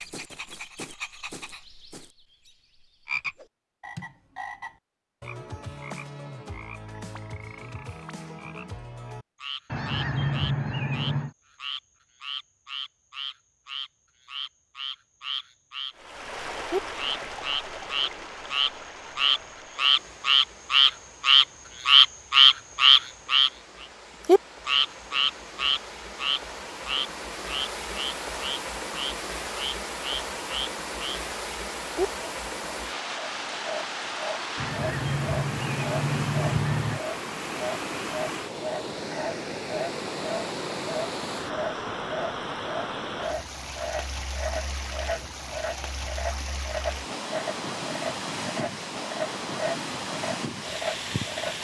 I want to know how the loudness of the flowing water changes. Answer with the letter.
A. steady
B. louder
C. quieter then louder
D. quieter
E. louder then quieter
B.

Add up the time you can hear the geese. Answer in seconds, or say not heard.
4 s.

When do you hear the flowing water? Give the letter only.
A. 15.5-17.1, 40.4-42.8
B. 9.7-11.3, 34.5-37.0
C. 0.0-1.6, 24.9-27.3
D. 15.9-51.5
D.